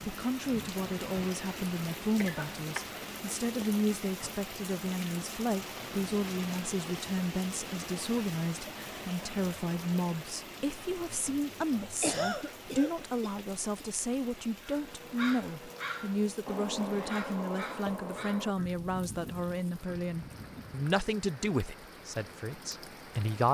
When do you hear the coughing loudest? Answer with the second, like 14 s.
12 s.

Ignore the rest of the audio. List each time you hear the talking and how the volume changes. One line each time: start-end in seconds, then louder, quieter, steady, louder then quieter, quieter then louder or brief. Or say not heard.
0.1-23.4 steady.